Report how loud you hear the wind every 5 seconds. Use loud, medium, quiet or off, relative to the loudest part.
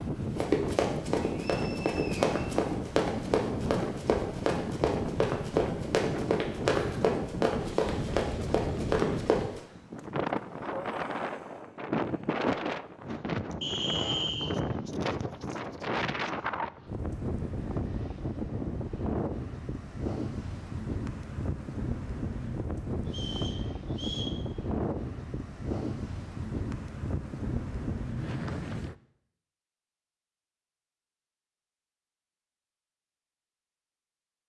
loud, loud, loud, loud, loud, loud, off.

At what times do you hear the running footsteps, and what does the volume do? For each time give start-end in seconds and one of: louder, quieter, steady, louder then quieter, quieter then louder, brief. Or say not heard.
0.2-9.6 steady.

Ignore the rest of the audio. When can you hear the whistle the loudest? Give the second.
14 s.